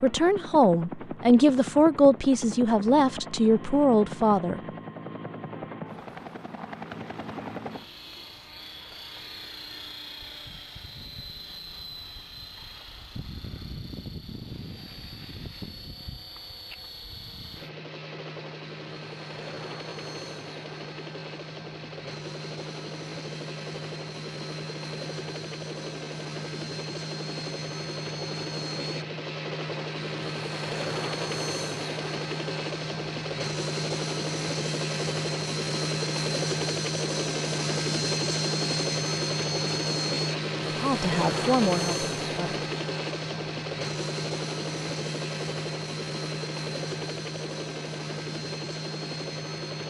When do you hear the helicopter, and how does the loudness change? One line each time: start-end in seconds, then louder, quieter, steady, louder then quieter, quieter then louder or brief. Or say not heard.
0.0-49.8 louder.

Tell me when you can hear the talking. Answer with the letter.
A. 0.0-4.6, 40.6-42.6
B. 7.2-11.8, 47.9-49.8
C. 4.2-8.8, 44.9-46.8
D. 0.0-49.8
A.